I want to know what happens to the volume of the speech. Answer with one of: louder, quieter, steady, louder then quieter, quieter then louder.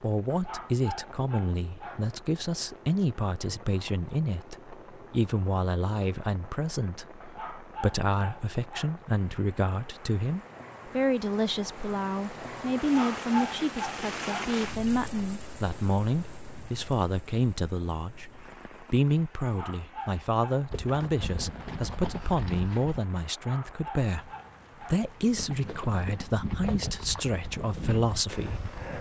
steady.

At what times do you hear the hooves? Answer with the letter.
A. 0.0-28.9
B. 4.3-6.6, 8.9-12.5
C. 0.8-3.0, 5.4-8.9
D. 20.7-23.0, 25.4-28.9
D.